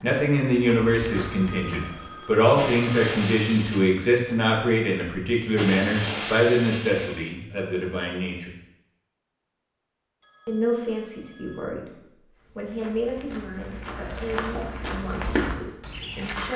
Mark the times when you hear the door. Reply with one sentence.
The door can't be heard in this clip.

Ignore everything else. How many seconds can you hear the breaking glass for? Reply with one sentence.
You can hear the breaking glass for 4 seconds altogether.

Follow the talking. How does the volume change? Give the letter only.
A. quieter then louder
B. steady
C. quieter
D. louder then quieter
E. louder
C.